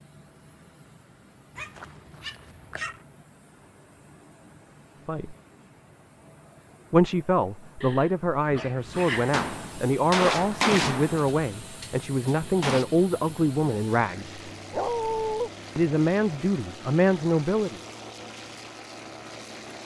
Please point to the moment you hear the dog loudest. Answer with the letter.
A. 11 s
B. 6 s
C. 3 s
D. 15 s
D.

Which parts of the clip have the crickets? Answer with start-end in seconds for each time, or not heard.
not heard.